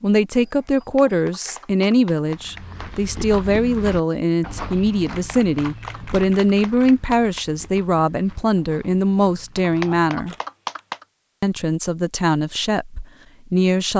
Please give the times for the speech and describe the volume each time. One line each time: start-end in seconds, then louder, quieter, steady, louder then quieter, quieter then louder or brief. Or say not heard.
0.0-10.3 steady
11.4-13.9 brief.